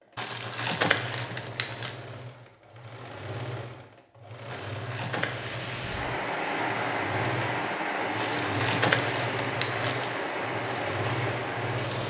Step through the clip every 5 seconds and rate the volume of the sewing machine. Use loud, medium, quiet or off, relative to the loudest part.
medium, loud, loud.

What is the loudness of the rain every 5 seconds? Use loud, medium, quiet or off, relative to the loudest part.
off, loud, loud.